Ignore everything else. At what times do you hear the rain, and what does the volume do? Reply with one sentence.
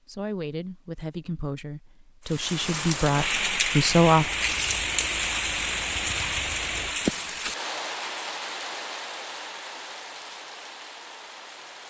You can hear the rain from 2.2 to 11.8 s, getting quieter.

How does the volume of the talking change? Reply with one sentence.
The volume of the talking goes up.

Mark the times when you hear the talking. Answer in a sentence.
You can hear the talking from 0.1 to 4.3 s.